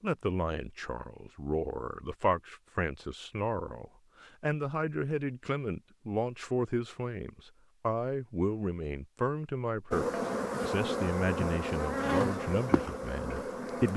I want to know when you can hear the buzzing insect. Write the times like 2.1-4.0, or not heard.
9.9-13.9.